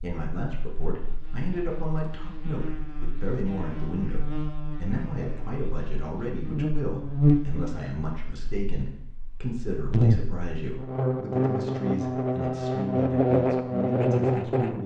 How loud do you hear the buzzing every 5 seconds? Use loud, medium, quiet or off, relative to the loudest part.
quiet, loud, loud.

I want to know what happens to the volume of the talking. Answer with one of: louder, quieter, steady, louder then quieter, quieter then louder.
steady.